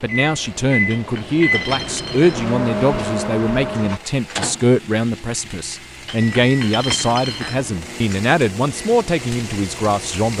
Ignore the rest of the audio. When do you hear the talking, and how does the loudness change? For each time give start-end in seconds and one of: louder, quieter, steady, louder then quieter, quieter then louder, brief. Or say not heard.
0.0-10.3 steady.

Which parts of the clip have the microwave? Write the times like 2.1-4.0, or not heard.
0.0-10.3.